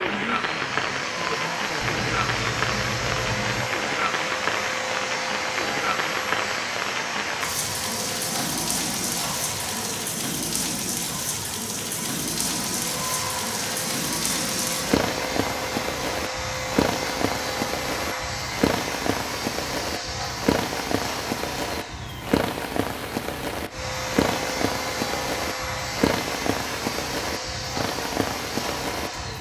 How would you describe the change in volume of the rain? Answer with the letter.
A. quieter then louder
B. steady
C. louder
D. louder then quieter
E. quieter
B.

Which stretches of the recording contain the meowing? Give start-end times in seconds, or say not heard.
1.8-3.6.